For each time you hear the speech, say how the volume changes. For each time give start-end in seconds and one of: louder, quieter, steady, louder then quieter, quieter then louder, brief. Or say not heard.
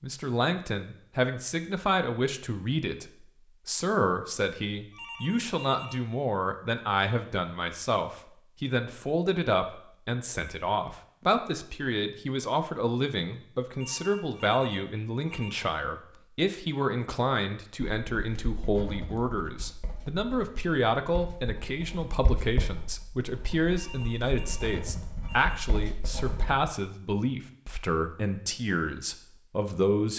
0.0-30.1 steady.